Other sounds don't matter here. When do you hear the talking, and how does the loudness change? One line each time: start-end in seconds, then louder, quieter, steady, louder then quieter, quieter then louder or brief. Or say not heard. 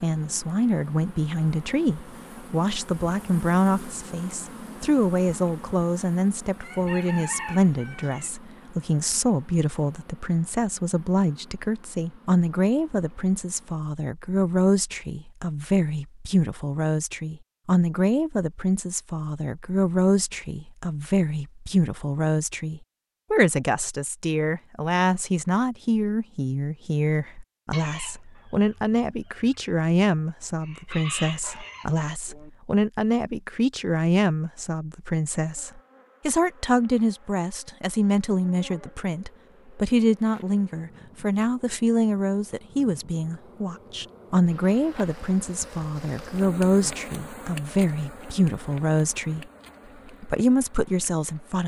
0.0-49.5 steady
50.2-51.6 brief.